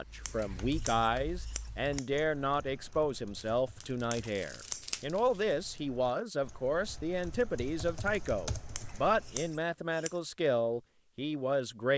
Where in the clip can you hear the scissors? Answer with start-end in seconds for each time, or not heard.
0.2-2.1, 4.1-5.0, 8.8-10.2.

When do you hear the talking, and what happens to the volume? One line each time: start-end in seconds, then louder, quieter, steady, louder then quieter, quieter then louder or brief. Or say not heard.
0.0-11.9 steady.